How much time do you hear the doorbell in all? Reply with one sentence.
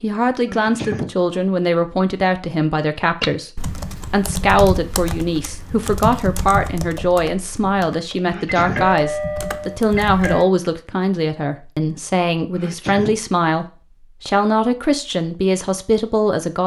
You can hear the doorbell for 2 seconds altogether.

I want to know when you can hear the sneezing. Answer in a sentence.
The sneezing can be heard from 0.5 to 1.2 s, from 8.2 to 8.9 s and from 12.5 to 13.2 s.